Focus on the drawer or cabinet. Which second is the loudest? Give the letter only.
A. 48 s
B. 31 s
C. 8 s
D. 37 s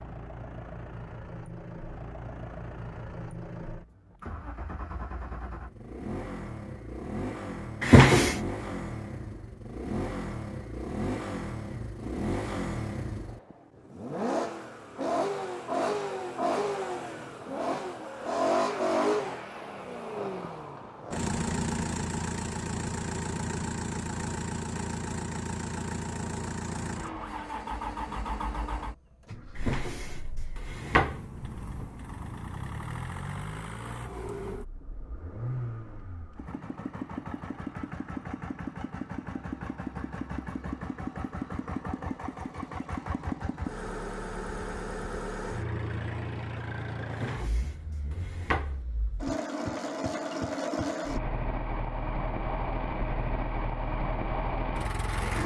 C.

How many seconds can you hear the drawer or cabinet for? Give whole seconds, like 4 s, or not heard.
4 s.